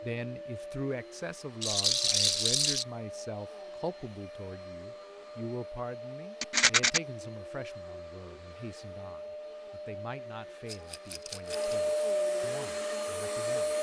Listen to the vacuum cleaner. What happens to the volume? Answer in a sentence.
The volume of the vacuum cleaner goes up.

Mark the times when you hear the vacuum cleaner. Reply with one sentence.
The vacuum cleaner can be heard from 0.0 to 13.7 s.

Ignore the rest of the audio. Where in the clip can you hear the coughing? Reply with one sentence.
You can't hear the coughing here.